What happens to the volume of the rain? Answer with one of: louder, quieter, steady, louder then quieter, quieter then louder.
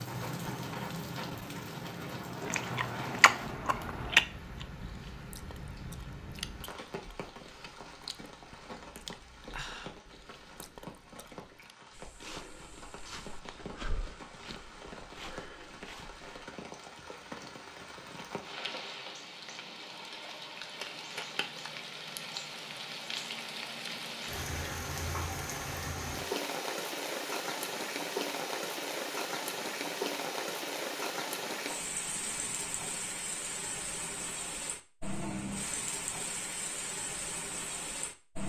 quieter then louder.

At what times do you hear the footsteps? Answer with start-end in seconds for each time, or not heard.
11.9-16.4.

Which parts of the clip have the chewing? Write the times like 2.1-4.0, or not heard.
2.4-11.8.